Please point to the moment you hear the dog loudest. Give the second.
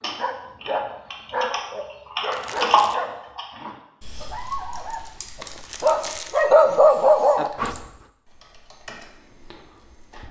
7 s.